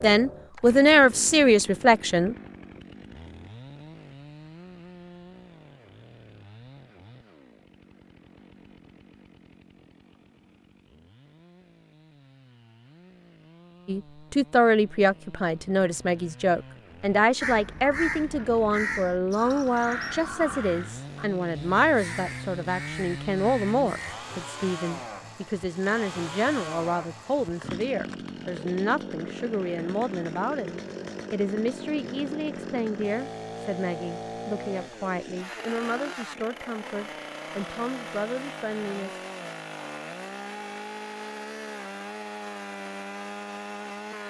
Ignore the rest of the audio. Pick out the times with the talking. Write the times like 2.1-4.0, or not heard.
0.0-2.4, 13.8-39.2.